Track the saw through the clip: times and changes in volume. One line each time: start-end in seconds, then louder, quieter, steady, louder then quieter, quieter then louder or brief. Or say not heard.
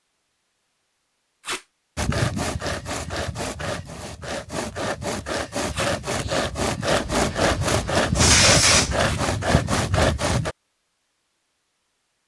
1.9-10.6 louder.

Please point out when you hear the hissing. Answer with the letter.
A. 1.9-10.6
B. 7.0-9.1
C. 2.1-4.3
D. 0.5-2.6
B.